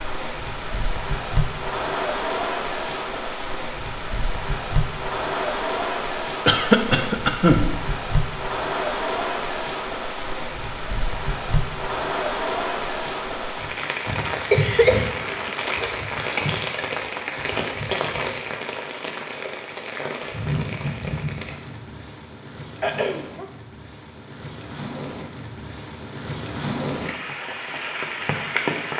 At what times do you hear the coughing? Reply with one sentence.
The coughing can be heard from 6.5 to 7.7 s, from 14.1 to 15.9 s and from 22.8 to 23.4 s.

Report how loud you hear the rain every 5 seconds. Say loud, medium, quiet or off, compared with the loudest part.
loud, loud, loud, loud, medium, loud.